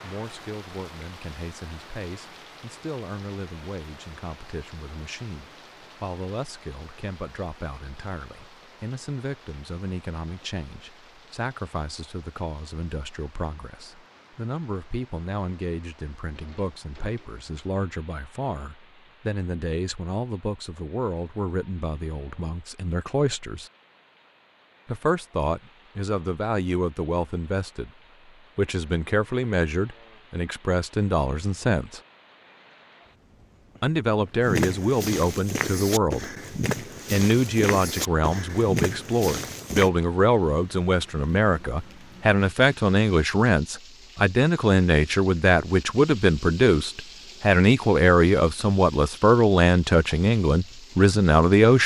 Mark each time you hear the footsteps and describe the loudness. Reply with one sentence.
You can hear the footsteps from 34.5 to 39.9 s, at a steady volume.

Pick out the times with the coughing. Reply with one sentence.
The coughing can't be heard in this clip.